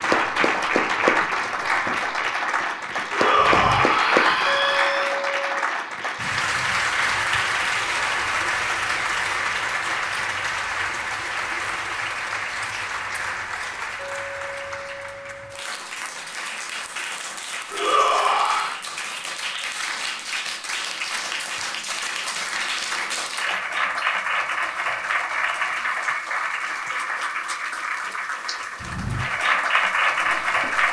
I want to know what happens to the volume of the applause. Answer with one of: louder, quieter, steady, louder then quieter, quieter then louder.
quieter then louder.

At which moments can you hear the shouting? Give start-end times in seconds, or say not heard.
3.1-5.1, 17.7-18.8.